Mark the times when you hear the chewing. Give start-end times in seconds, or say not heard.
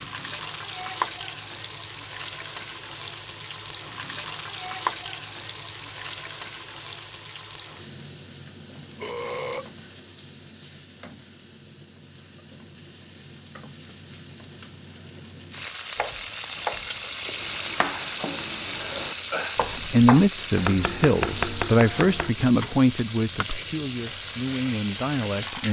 not heard.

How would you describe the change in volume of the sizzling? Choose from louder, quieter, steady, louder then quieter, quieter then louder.
quieter then louder.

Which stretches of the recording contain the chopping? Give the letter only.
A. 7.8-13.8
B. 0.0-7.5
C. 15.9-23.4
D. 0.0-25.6
C.